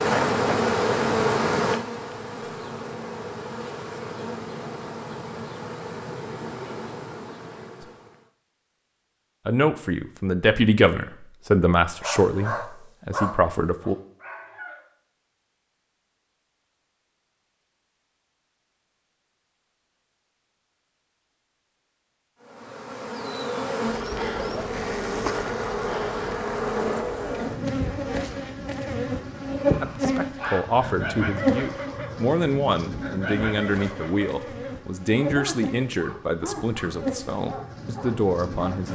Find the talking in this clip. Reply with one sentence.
The talking can be heard from 9.4 to 13.9 s and from 29.8 to 38.8 s.